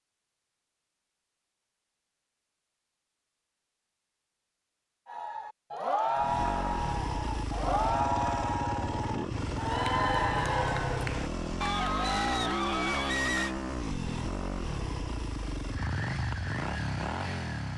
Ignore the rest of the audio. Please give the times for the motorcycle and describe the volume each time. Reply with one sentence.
The motorcycle can be heard from 6.2 to 17.7 s, at a steady volume.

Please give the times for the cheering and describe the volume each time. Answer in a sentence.
The cheering can be heard from 5.0 to 13.6 s, at a steady volume.